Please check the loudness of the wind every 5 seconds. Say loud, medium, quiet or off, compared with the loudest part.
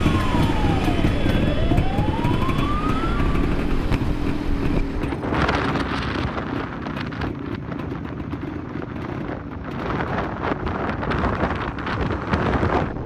medium, medium, loud.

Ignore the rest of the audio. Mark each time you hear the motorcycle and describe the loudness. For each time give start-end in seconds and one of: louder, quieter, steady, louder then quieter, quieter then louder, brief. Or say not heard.
0.0-13.0 quieter.